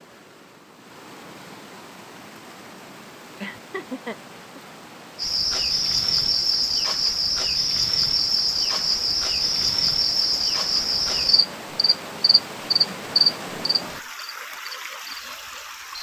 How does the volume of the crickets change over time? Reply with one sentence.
The volume of the crickets stays about the same.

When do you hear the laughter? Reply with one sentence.
You can hear the laughter from 3.2 to 4.6 s.